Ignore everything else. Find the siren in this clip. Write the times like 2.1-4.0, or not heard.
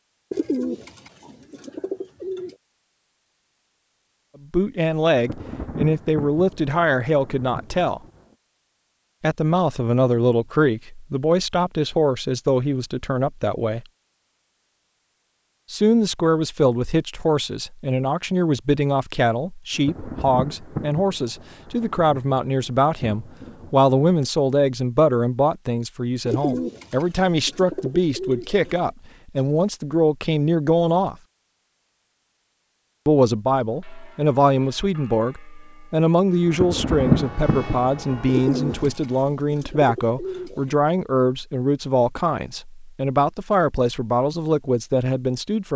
not heard.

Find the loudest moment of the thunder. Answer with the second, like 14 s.
37 s.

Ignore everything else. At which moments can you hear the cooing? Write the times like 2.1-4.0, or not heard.
0.3-2.5, 26.2-28.9, 38.2-40.8.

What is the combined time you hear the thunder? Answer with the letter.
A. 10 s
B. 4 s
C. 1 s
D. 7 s
A.